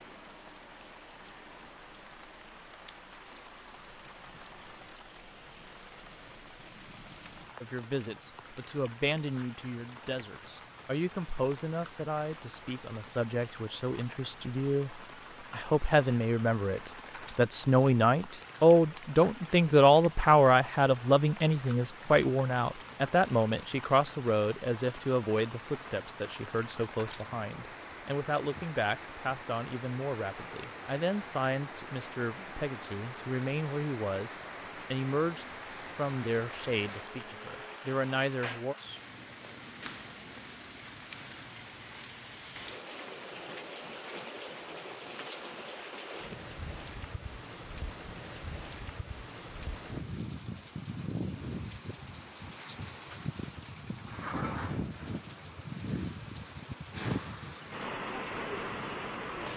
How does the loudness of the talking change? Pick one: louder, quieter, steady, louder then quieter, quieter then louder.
louder then quieter.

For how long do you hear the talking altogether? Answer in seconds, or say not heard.
31 s.